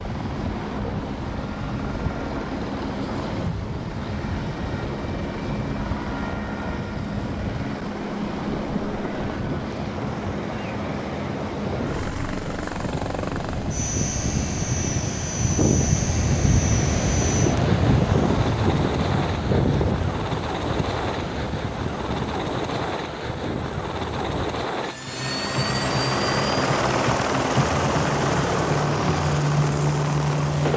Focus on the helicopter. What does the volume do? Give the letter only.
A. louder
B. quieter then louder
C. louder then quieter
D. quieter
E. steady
A.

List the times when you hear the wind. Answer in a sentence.
You can hear the wind from 0.0 to 24.6 s.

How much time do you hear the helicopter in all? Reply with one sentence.
You can hear the helicopter for 31 seconds altogether.